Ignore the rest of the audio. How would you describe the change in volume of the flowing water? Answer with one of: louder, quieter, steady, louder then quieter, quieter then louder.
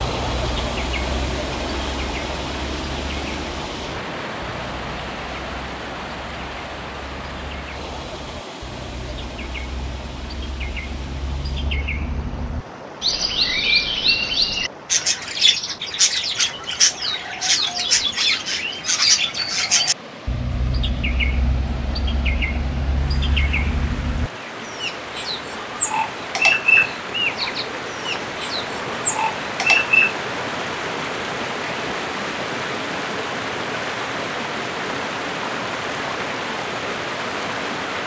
quieter then louder.